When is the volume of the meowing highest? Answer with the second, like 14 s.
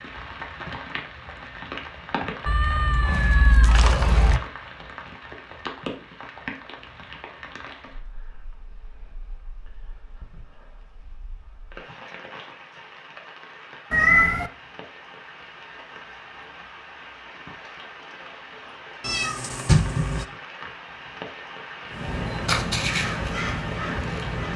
14 s.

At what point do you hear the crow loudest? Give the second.
23 s.